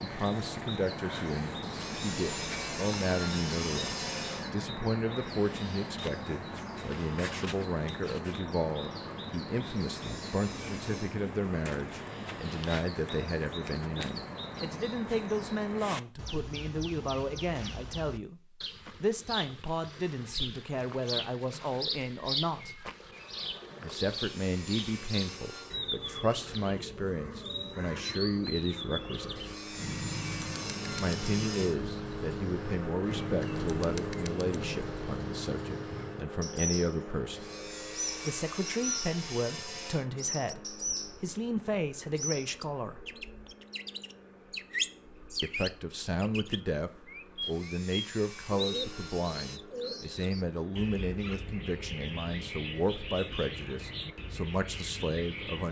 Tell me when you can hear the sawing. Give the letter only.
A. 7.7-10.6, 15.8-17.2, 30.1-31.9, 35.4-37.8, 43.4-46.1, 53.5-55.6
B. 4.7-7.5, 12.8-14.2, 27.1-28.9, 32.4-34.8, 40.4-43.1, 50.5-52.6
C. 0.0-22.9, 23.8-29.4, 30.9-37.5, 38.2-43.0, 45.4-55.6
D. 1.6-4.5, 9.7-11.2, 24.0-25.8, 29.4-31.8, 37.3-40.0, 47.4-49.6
D.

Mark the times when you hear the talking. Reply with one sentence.
You can hear the talking from 0.0 to 22.9 s, from 23.8 to 29.4 s, from 30.9 to 37.5 s, from 38.2 to 43.0 s and from 45.4 to 55.6 s.